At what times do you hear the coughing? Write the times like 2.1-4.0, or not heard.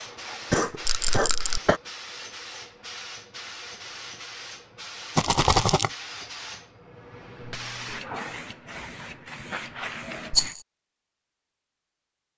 0.5-1.8.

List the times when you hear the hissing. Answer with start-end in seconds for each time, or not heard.
0.0-10.6.